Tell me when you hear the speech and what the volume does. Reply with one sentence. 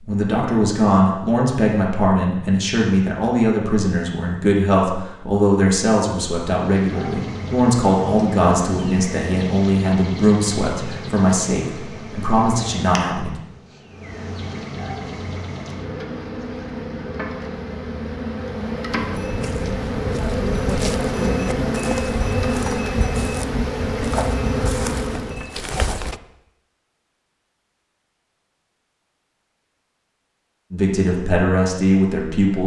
You can hear the speech from 0.1 to 13.3 s, at a steady volume; and briefly from 30.7 to 32.6 s.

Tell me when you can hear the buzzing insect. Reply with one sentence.
The buzzing insect can be heard from 6.5 to 25.4 s.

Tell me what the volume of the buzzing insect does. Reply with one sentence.
The volume of the buzzing insect goes up.